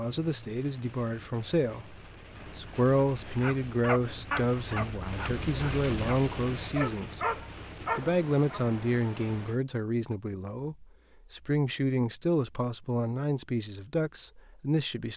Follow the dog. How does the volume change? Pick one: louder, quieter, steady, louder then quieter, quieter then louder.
quieter then louder.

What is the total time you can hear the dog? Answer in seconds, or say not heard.
5 s.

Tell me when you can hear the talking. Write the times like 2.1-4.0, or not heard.
0.0-7.3, 8.0-15.1.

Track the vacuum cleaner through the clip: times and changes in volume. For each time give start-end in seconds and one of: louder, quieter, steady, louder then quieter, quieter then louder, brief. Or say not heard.
not heard.